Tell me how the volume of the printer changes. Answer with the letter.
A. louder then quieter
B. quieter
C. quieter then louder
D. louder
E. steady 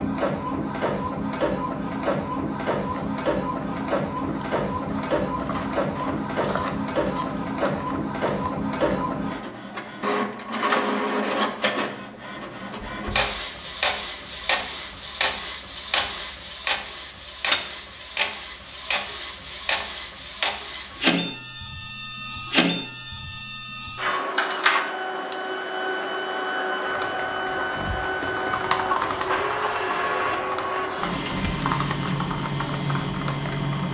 E.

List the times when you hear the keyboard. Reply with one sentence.
The keyboard can be heard from 26.9 to 33.9 s.